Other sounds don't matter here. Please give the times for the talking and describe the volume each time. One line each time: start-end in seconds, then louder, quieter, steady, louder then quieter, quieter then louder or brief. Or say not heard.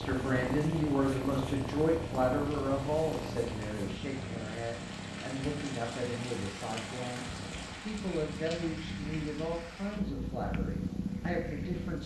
0.0-12.0 quieter.